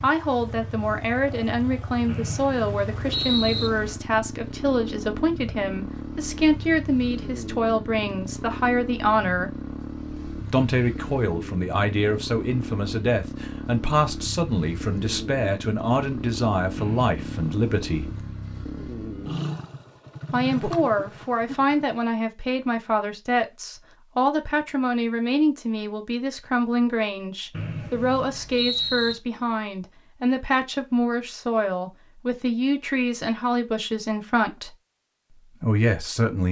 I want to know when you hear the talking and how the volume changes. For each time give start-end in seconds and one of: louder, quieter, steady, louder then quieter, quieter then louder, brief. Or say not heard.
0.0-9.6 steady
10.5-18.1 steady
20.3-34.8 steady
35.6-36.4 brief.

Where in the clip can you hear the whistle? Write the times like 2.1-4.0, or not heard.
2.0-3.7, 16.8-17.6, 27.5-29.1.